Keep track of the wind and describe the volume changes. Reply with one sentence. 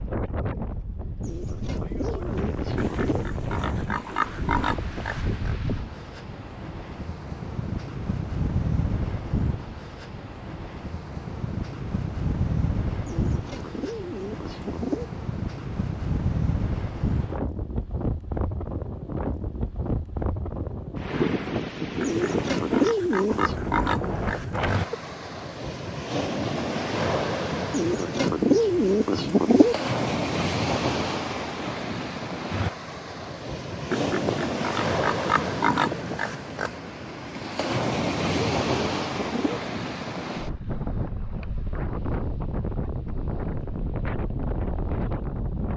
The volume of the wind stays about the same.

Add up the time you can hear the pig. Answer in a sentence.
The pig can be heard for 9 seconds in total.